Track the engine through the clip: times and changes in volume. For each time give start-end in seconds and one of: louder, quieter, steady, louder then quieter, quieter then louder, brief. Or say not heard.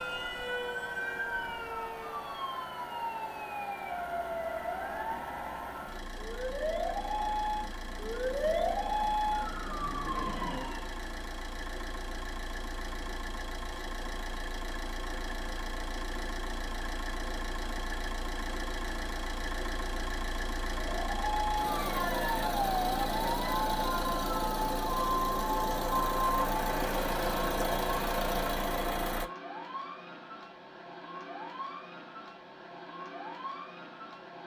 0.0-29.2 louder.